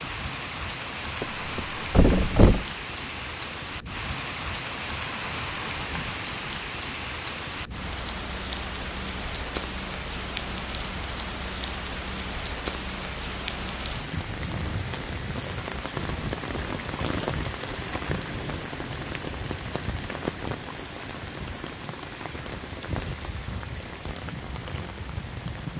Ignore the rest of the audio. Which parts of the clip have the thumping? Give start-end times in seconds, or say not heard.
1.2-2.6.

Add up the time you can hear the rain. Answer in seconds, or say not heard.
26 s.